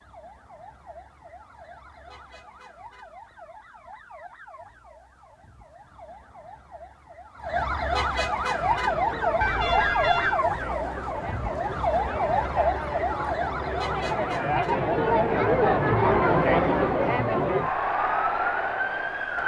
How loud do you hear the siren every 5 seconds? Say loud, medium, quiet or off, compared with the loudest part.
quiet, loud, loud, loud.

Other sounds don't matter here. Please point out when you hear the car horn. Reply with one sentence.
You can hear the car horn from 9.4 to 10.4 s.